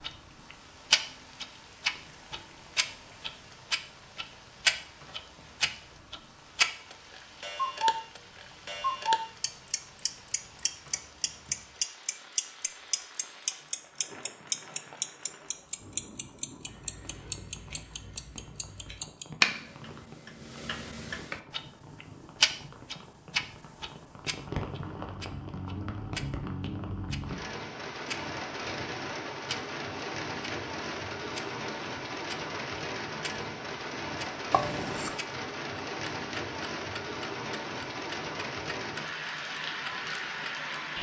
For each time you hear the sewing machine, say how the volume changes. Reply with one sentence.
The sewing machine can't be heard in this clip.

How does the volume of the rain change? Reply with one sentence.
The volume of the rain goes up.